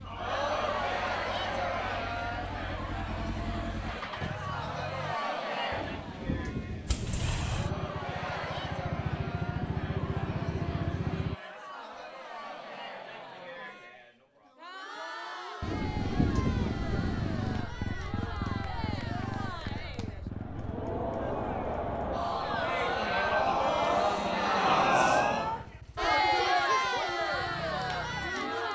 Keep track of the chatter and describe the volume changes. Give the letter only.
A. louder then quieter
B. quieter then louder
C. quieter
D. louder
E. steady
B.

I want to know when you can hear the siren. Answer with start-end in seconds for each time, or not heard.
not heard.